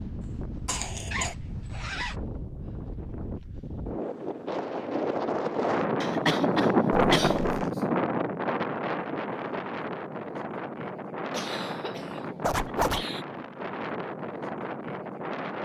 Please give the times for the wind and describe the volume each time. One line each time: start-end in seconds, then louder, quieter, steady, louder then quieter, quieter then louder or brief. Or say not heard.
0.0-15.6 louder then quieter.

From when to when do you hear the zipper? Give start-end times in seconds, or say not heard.
1.1-2.1, 6.9-7.7, 12.4-13.1.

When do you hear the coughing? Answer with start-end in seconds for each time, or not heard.
0.7-1.4, 6.0-7.5, 11.3-13.2.